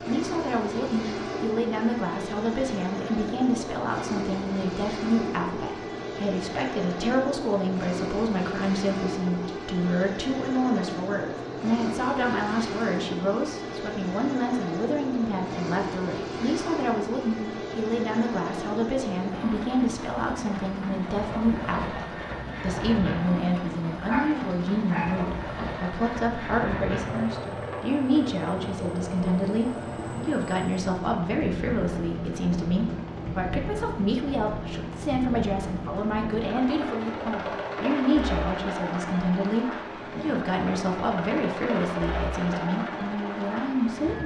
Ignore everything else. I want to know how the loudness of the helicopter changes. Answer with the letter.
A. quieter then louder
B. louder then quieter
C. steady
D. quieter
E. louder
C.